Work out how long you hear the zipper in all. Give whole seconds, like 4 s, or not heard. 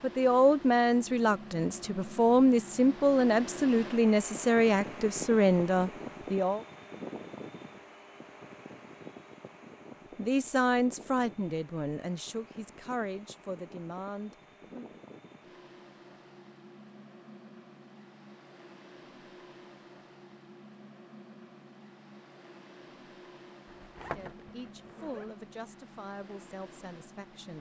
2 s.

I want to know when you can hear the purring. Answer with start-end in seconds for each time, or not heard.
not heard.